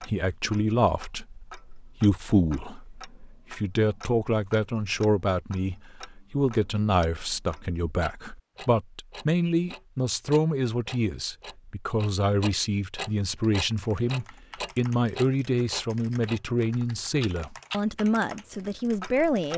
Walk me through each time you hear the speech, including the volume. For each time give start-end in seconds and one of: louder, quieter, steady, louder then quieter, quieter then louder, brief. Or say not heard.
0.0-19.5 steady.